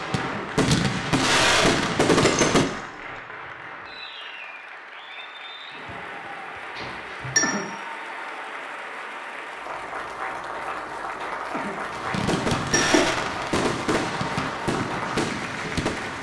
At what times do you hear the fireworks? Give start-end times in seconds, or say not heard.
0.0-2.6, 11.9-16.1.